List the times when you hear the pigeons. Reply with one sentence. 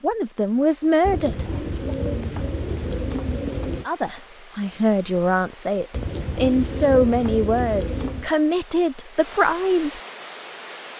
The pigeons can be heard from 1.1 to 3.9 s and from 5.9 to 8.3 s.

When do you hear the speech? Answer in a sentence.
You can hear the speech from 0.0 to 1.9 s and from 3.9 to 10.0 s.